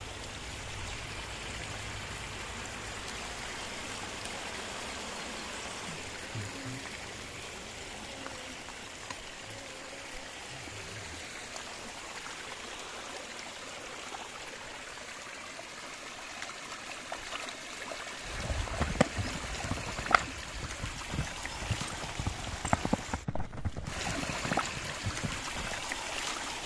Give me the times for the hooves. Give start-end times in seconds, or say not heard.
18.2-25.8.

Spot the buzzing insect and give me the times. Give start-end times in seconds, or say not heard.
0.0-11.8.